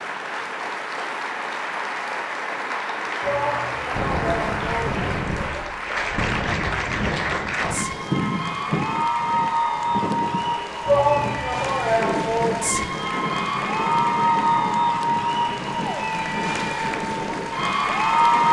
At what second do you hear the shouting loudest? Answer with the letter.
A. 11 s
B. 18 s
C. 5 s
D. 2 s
A.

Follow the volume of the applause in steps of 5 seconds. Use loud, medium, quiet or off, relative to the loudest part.
medium, loud, loud, loud.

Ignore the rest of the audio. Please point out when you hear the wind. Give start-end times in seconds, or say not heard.
3.9-18.4.